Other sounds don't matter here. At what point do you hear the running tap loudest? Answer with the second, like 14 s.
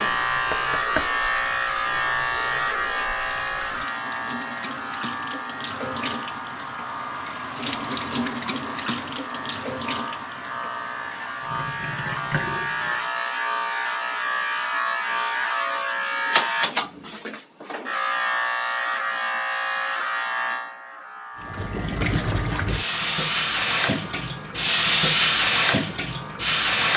25 s.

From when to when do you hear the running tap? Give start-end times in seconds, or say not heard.
0.0-13.1, 21.4-26.9.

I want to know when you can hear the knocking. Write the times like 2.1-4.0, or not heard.
0.5-1.1.